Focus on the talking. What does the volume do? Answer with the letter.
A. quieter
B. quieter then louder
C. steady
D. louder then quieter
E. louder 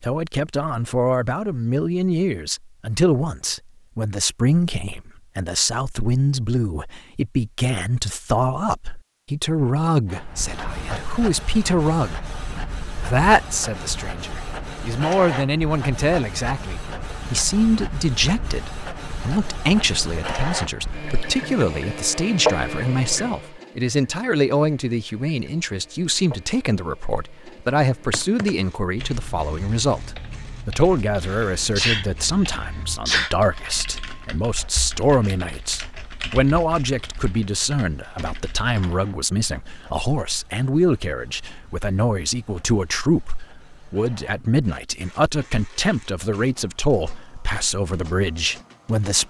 C.